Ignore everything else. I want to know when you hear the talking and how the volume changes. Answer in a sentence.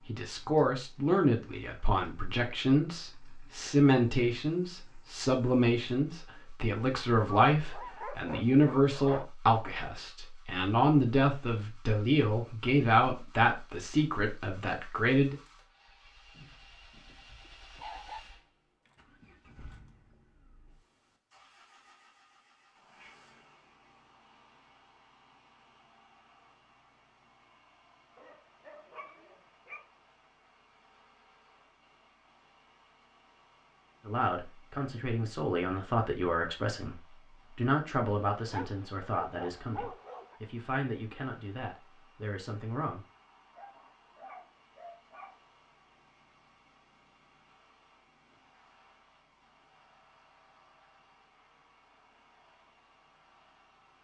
The talking can be heard from 0.1 to 15.3 s, at a steady volume; and from 34.0 to 43.0 s, getting quieter.